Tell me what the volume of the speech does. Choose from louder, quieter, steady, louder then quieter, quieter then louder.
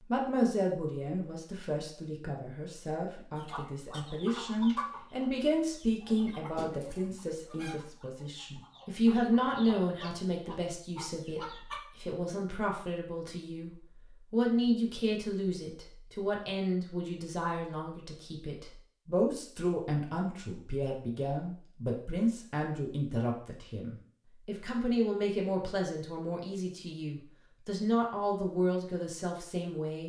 steady.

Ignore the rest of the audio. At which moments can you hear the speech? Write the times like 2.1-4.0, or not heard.
0.1-13.7, 14.3-30.0.